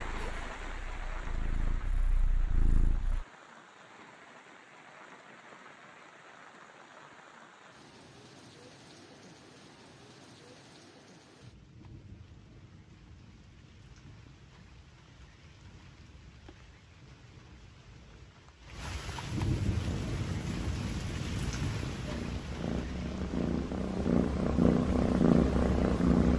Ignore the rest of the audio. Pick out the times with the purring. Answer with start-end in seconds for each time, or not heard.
0.0-3.2, 19.7-26.3.